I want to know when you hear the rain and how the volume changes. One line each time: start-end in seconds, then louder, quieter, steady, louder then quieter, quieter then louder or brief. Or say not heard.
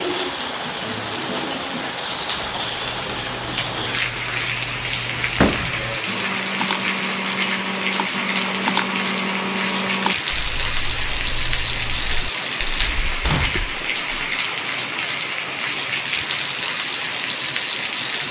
0.0-18.2 steady.